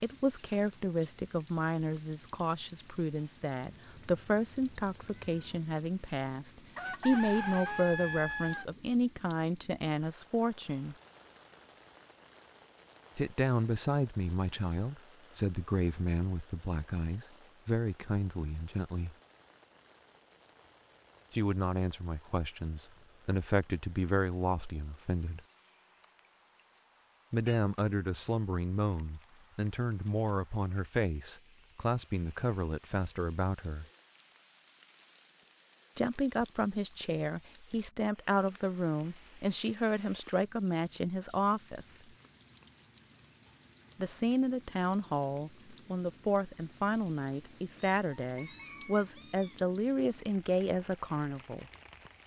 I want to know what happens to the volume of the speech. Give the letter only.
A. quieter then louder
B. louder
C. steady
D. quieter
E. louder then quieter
C.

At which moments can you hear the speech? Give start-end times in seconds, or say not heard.
0.0-10.9, 13.2-19.1, 21.3-25.4, 27.3-33.9, 36.0-42.0, 44.0-51.6.